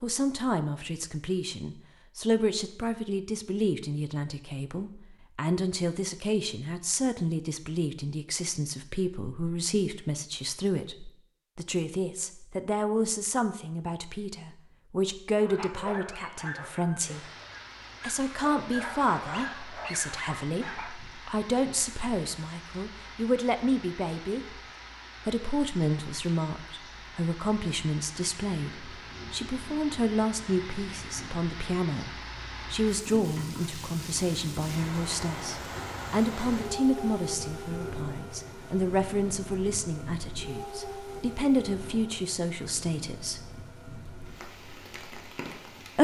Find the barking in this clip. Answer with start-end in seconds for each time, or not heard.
15.3-21.0.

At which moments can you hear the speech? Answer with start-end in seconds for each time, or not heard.
0.0-17.2, 18.0-24.6, 25.2-43.4.